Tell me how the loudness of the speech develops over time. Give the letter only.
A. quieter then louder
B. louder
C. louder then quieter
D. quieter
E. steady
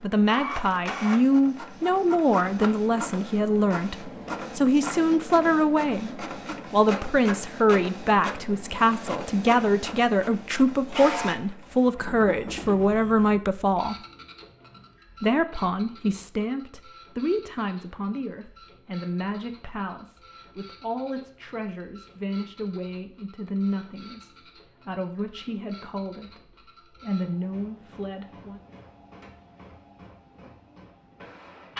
D.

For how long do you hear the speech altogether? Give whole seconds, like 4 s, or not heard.
27 s.